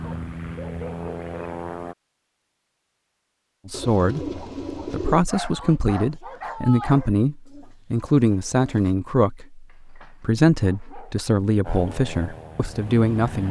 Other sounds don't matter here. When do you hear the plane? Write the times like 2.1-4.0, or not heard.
0.0-1.9, 11.6-13.4.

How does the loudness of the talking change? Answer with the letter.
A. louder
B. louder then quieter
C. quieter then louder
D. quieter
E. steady
E.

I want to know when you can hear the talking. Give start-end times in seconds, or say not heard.
3.6-13.4.